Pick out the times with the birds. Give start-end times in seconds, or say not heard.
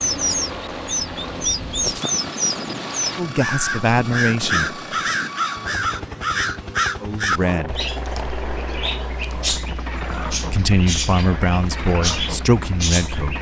0.0-13.3.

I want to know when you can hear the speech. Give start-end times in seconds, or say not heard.
3.1-4.8, 7.0-7.8, 10.3-13.3.